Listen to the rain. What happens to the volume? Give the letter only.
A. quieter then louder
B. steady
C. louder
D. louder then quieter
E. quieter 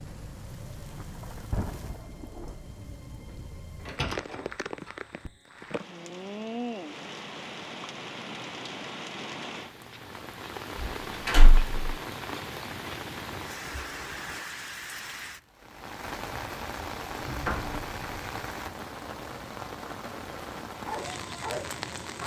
B.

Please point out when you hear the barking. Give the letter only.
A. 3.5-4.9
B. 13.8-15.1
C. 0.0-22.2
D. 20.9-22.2
D.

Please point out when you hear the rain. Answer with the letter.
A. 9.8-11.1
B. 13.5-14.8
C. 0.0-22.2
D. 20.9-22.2
C.